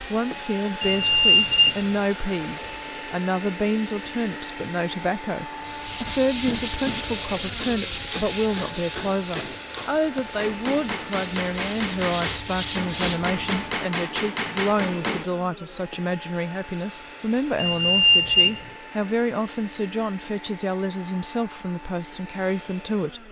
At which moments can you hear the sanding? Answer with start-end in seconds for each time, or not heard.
5.5-13.8.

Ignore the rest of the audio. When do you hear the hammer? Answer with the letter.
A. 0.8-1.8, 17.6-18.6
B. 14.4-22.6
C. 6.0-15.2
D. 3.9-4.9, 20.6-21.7
C.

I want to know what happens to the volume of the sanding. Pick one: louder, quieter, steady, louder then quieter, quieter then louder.
quieter then louder.